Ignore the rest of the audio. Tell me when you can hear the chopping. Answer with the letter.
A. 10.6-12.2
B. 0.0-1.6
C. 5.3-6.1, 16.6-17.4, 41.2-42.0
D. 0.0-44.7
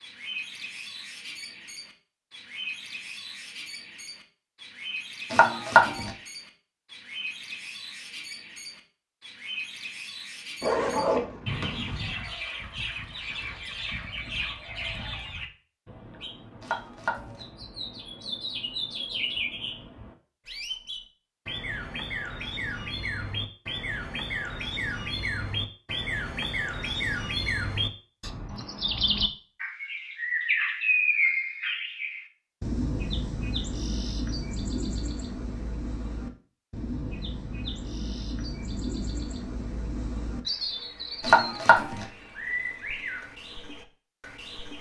C.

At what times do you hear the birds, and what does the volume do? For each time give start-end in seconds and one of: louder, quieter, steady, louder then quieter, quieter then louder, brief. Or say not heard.
0.0-44.7 louder then quieter.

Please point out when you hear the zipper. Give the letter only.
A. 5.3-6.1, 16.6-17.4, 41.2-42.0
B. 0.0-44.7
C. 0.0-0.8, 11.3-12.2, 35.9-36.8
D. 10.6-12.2
D.